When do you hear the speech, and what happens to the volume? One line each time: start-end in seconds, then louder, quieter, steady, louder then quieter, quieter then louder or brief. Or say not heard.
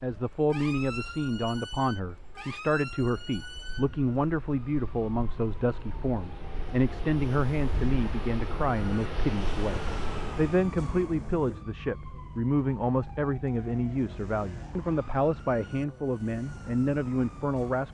0.0-17.9 steady.